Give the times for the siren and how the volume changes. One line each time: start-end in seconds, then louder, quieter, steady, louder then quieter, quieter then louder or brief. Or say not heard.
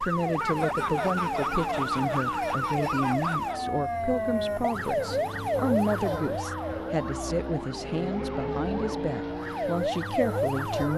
0.0-10.9 quieter then louder.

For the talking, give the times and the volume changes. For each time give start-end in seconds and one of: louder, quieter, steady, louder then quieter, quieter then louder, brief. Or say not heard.
0.0-10.9 steady.